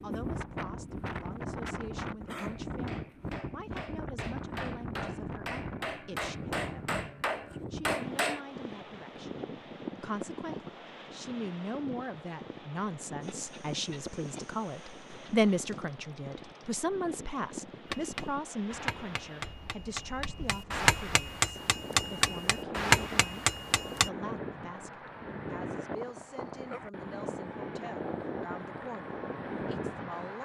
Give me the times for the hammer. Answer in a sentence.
The hammer can be heard from 2.4 to 8.4 s and from 17.9 to 24.1 s.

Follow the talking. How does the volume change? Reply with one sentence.
The volume of the talking goes up, then down.